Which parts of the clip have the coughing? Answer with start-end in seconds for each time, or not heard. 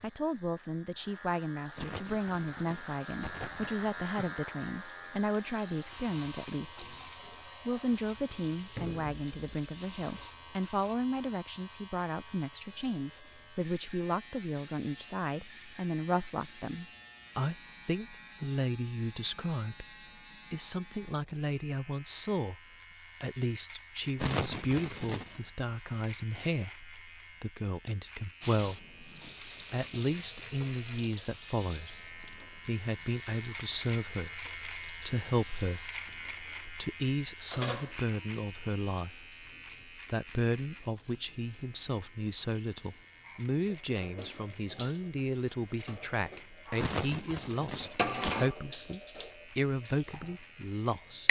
1.8-4.3, 24.1-25.4, 46.8-48.4.